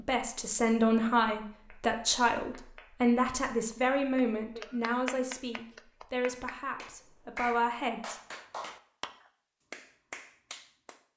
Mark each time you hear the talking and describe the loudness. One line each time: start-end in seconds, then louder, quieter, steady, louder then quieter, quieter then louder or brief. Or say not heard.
0.0-8.2 quieter.